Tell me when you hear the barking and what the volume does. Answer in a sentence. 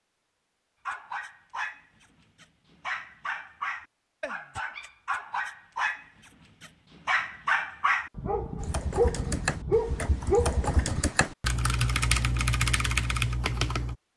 The barking can be heard from 0.8 to 10.8 s, getting louder.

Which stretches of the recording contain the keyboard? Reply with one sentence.
The keyboard can be heard from 8.6 to 13.9 s.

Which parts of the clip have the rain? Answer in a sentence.
The rain can't be heard in this clip.